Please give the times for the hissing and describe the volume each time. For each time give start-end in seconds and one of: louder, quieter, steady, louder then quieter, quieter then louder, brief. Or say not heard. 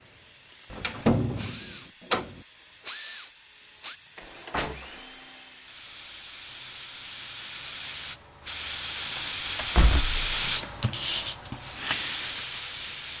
0.0-13.1 louder.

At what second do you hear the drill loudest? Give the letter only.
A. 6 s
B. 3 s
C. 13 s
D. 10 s
B.